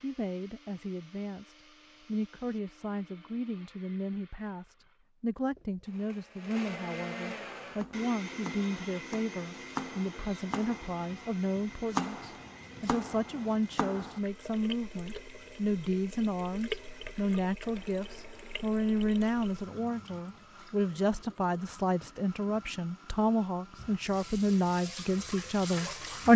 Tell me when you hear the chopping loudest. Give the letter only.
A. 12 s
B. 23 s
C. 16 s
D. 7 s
A.